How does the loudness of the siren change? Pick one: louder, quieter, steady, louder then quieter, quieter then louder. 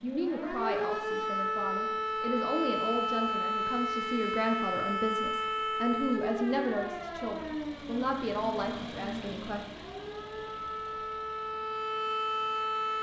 quieter then louder.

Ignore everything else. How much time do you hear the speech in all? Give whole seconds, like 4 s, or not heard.
10 s.